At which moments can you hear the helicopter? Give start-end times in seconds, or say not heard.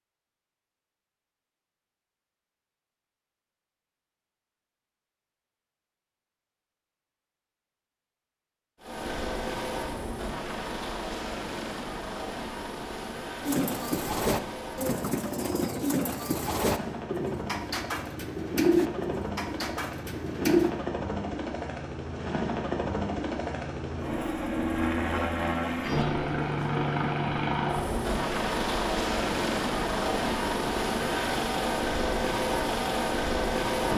8.8-33.9.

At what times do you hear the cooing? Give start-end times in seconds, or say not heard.
13.4-20.7.